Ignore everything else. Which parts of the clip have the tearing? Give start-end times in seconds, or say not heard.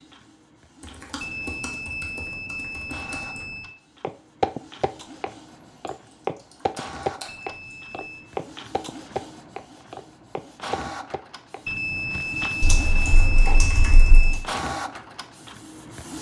not heard.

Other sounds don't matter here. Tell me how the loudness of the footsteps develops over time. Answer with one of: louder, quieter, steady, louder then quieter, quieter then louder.
quieter.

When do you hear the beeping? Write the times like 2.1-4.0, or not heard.
1.2-3.8, 7.2-8.3, 11.7-14.4.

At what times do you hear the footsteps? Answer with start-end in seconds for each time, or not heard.
4.0-12.5.